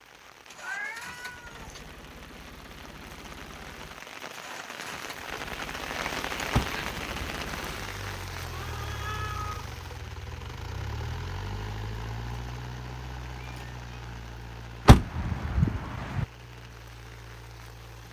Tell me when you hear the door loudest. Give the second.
15 s.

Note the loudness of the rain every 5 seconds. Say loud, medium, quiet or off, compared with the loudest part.
medium, loud, quiet, quiet.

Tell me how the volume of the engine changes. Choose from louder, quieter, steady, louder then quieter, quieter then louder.
louder then quieter.